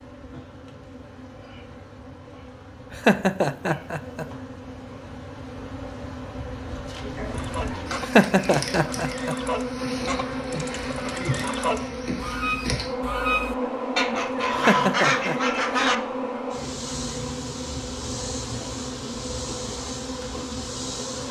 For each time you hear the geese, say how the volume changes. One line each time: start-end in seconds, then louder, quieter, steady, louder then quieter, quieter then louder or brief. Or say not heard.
7.3-15.9 louder.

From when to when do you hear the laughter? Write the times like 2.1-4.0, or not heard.
2.9-4.2, 8.0-9.3, 14.5-15.3.